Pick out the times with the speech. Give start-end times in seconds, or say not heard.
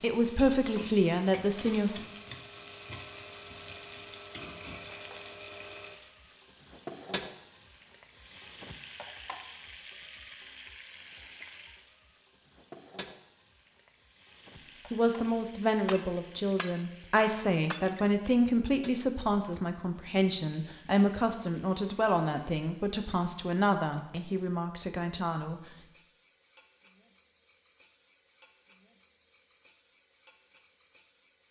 0.0-2.0, 14.9-25.6.